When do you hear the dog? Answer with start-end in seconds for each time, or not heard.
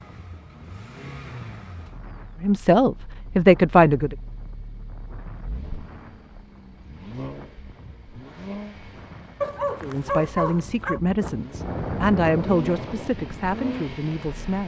9.4-11.0.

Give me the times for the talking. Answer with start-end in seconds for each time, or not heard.
2.4-4.2, 9.8-14.6.